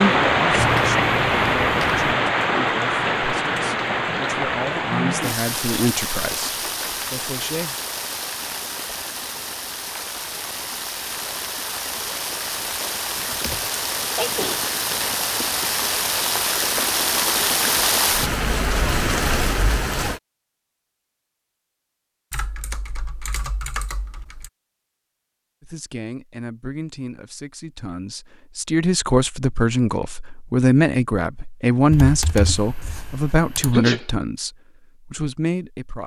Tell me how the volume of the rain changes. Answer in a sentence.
The loudness of the rain goes down, then up.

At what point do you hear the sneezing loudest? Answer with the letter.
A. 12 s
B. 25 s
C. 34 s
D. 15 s
C.